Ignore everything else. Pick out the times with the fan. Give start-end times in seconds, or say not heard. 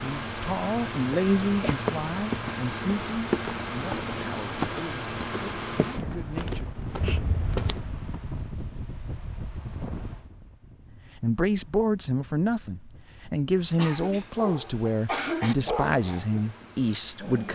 0.0-17.5.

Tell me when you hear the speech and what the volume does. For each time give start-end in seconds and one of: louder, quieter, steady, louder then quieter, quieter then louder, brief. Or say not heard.
0.0-6.7 quieter
11.2-17.5 steady.